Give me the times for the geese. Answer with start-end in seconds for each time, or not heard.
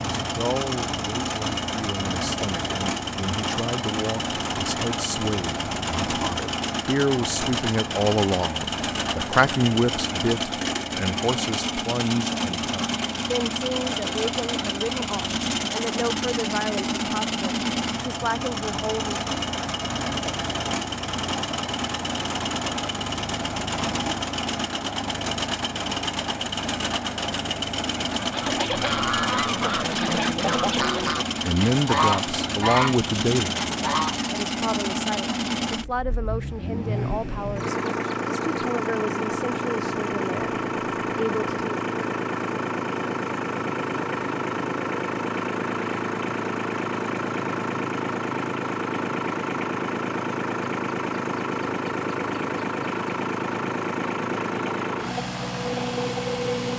28.1-34.2.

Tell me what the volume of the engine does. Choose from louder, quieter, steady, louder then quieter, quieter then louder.
steady.